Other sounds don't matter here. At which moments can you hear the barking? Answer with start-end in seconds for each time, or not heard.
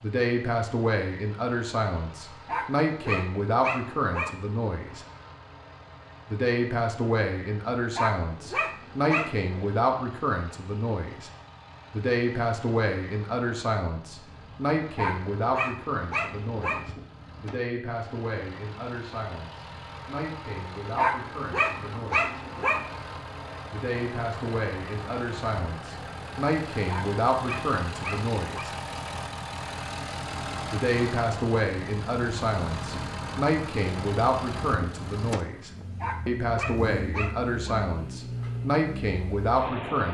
2.5-4.3, 8.0-9.6, 14.9-16.9, 20.9-22.9, 26.9-28.7, 36.0-37.5.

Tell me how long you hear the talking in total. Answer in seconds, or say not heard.
35 s.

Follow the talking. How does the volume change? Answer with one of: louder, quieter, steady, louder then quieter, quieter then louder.
quieter then louder.